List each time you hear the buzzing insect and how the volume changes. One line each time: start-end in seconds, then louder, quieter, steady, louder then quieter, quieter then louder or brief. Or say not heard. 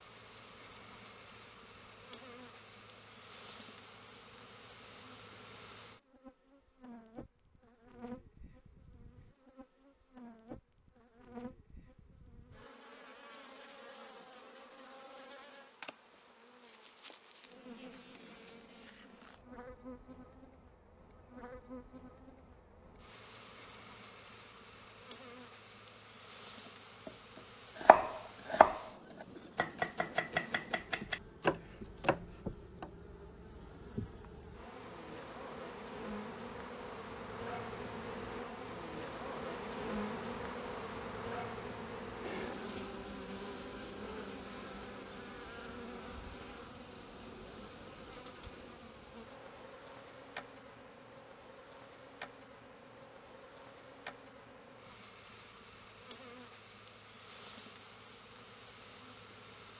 0.0-59.7 louder then quieter.